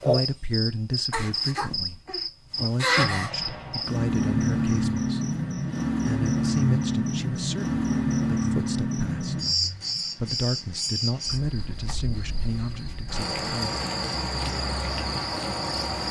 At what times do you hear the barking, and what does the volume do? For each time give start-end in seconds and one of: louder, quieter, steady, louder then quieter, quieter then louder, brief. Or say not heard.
not heard.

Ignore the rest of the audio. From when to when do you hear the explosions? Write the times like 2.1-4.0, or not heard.
3.0-3.9.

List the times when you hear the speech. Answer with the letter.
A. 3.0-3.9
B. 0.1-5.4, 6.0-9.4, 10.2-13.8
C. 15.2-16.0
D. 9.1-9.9
B.